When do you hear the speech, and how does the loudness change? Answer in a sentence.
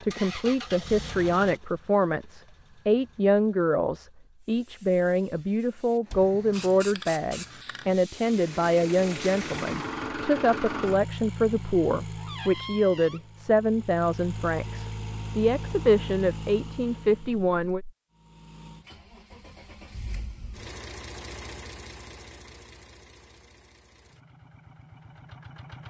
You can hear the speech from 0.0 to 17.8 s, at a steady volume.